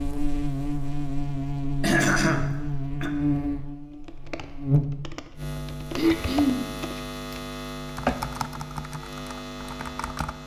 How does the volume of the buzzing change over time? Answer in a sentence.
The loudness of the buzzing goes down.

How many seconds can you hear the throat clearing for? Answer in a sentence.
You can hear the throat clearing for 2 seconds altogether.